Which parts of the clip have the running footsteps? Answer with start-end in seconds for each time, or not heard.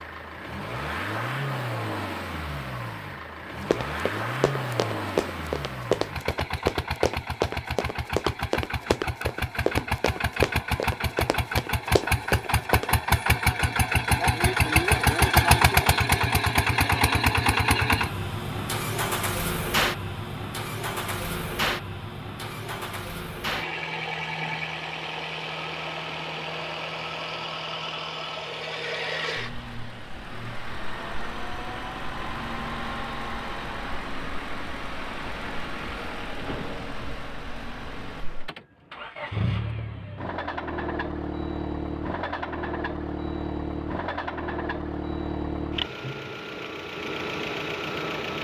3.6-12.9.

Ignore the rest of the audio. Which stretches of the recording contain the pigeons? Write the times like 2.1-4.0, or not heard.
not heard.